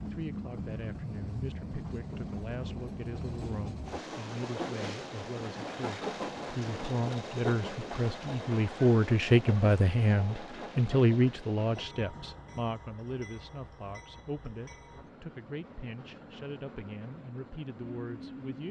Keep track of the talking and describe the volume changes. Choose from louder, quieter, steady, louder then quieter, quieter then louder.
louder then quieter.